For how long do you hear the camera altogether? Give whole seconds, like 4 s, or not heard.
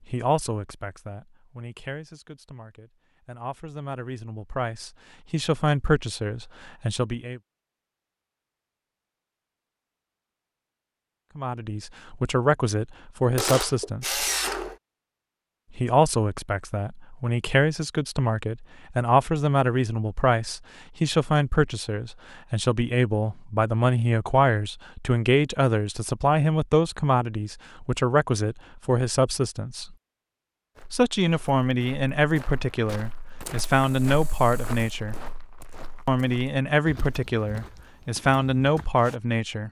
3 s.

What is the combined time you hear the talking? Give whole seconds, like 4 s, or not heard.
32 s.